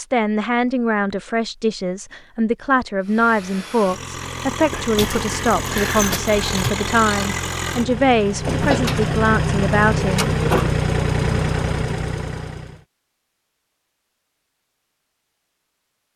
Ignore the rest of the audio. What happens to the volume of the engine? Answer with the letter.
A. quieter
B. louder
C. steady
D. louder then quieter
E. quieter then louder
B.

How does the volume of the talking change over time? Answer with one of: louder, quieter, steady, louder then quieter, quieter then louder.
steady.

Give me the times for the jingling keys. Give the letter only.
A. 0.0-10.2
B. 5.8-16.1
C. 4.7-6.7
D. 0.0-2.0
C.